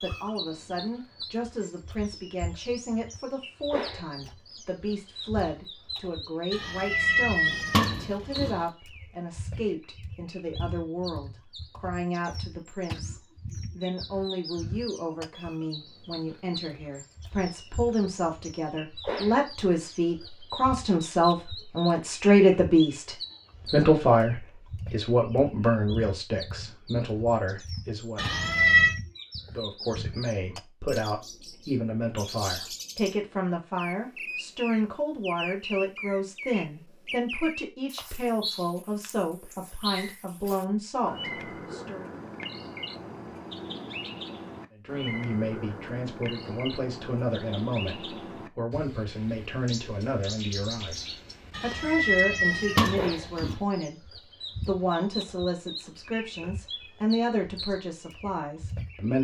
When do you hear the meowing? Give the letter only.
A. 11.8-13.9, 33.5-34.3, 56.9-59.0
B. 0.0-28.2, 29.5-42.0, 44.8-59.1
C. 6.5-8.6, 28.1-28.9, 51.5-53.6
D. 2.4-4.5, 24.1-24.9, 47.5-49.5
C.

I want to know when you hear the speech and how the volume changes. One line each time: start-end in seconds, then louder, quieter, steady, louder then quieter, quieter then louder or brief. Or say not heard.
0.0-28.2 louder
29.5-42.0 steady
44.8-59.1 steady.